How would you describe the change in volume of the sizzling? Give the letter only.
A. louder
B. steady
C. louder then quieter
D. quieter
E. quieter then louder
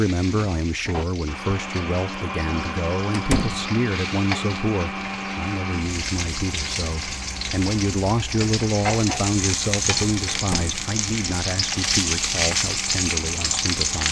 A.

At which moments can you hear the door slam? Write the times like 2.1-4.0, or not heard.
3.1-3.6, 10.3-10.8.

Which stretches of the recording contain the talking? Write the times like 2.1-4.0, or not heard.
0.0-14.0.